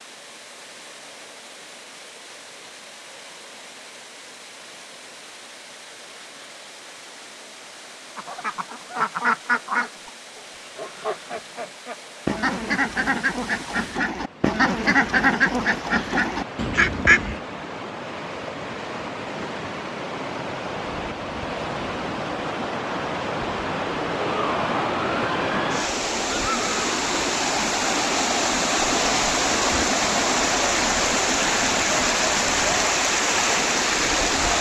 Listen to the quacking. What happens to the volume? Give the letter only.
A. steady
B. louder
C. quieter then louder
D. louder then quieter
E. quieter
C.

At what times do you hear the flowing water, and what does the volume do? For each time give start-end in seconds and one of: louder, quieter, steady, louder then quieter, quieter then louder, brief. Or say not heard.
0.0-34.5 louder.